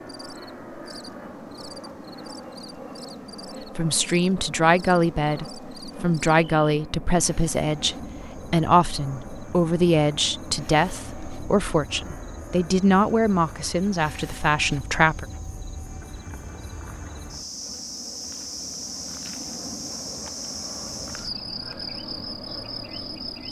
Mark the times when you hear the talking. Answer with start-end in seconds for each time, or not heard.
3.8-15.2.